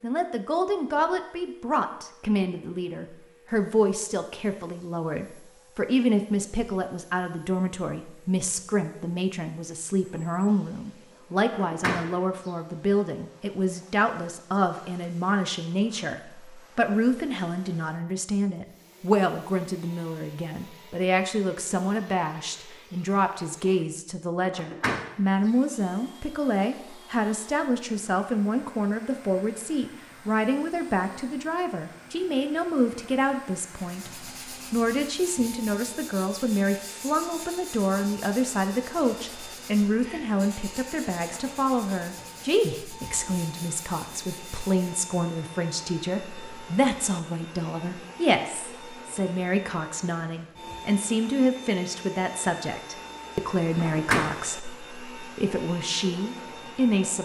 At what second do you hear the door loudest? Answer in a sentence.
The volume of the door peaks at 54 seconds.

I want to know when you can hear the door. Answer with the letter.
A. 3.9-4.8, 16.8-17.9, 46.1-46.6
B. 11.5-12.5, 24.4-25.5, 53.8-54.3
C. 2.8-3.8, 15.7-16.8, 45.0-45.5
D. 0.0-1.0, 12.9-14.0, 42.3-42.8
B.